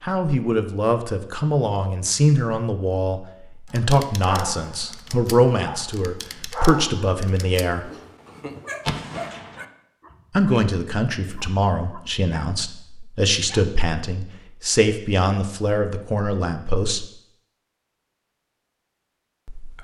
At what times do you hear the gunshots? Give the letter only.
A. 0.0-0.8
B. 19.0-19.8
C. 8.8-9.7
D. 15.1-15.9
C.